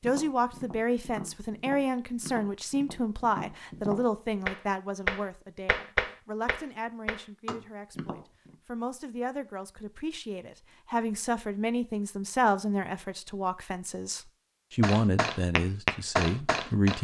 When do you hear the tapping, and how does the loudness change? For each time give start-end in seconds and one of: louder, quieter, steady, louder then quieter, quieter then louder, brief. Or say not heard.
0.0-8.6 louder then quieter
14.8-16.9 brief.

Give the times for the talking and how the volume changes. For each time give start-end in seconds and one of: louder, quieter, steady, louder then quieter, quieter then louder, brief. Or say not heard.
0.0-16.9 quieter then louder.